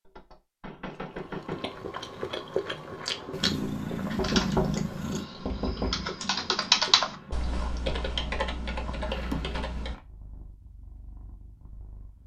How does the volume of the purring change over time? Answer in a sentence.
The volume of the purring goes down.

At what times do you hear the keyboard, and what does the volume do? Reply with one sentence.
The keyboard can be heard from 4.1 to 9.9 s, getting louder then quieter.